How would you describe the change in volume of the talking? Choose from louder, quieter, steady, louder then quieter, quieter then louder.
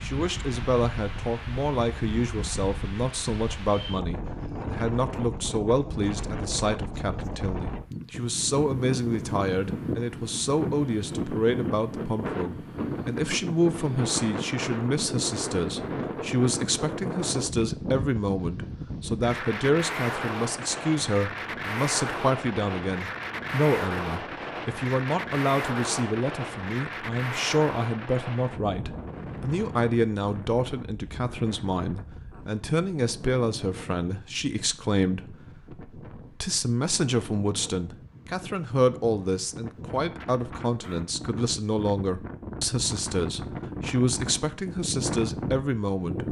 steady.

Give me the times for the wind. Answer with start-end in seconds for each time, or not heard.
0.0-46.2.